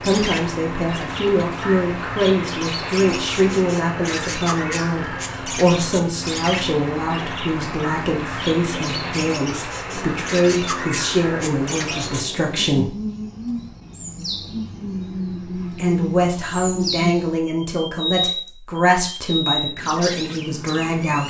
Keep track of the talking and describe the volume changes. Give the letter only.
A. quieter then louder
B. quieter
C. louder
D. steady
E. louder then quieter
D.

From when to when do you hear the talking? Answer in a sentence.
The talking can be heard from 0.0 to 12.9 s and from 15.7 to 21.2 s.